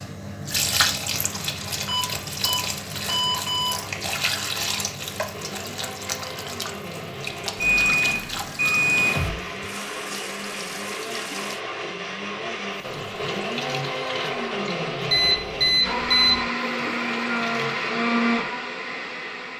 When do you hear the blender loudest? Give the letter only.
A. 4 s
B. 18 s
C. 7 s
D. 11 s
B.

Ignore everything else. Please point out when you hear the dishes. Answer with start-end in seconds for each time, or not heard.
not heard.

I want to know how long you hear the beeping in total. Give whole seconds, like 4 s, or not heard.
5 s.